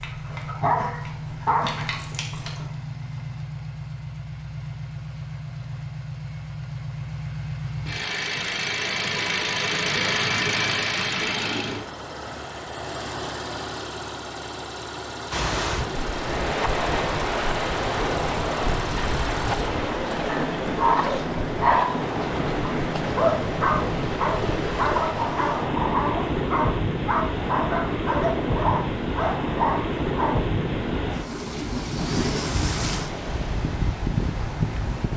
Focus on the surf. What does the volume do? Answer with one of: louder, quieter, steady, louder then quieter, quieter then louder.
steady.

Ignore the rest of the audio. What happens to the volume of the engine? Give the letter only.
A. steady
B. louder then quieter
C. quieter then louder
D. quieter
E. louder
B.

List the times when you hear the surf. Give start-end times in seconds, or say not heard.
15.3-35.1.